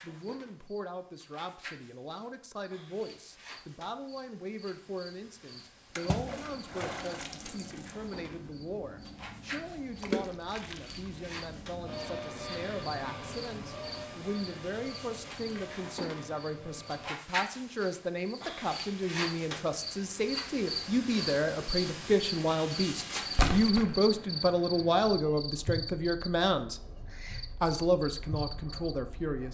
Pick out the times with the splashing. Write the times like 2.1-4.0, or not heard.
6.0-8.0, 10.0-10.9, 23.3-24.1.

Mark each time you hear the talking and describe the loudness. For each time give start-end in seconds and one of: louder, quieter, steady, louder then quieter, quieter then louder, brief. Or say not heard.
0.0-26.8 louder
27.6-29.4 brief.